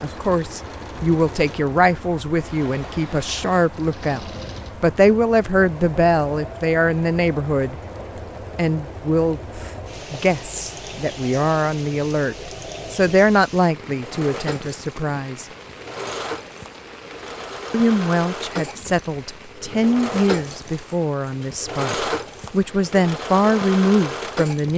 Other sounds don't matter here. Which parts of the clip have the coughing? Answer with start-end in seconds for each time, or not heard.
not heard.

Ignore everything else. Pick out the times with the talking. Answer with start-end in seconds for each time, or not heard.
0.0-7.8, 8.6-15.4, 17.7-24.7.